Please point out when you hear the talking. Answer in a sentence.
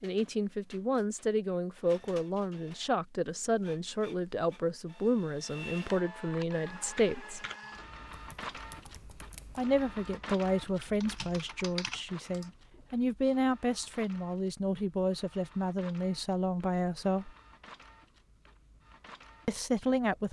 You can hear the talking from 0.0 to 7.5 s, from 9.6 to 17.3 s and from 19.4 to 20.2 s.